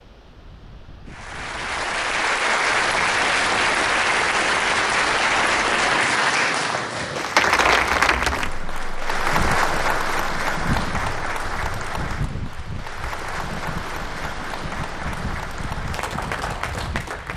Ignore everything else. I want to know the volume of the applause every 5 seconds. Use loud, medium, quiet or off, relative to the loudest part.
loud, loud, medium, medium.